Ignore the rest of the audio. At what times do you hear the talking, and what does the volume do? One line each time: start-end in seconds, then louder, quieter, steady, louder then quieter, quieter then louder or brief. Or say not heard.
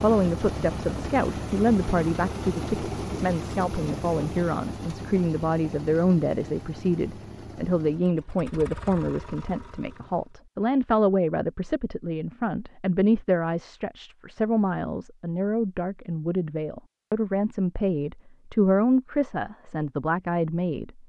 0.0-21.0 steady.